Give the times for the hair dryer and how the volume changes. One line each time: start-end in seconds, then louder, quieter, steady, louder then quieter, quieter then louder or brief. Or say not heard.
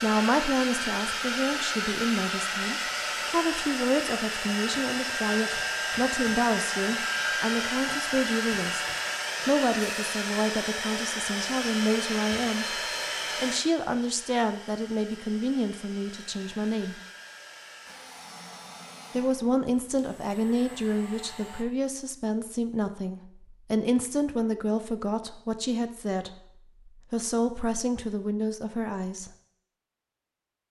0.0-21.6 quieter.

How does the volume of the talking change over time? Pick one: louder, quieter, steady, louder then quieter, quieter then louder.
steady.